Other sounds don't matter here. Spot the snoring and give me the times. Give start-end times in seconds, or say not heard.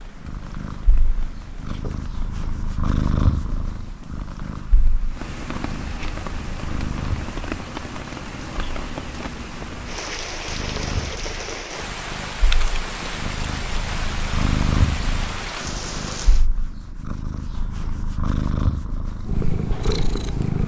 not heard.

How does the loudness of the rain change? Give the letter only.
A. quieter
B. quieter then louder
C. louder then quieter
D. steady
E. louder
E.